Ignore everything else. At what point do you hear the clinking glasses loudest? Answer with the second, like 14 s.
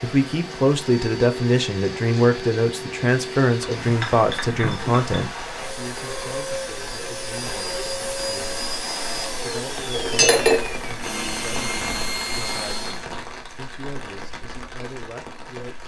10 s.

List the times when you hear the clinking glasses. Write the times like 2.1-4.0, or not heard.
3.6-5.0, 9.9-10.8.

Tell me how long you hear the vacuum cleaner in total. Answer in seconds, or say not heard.
13 s.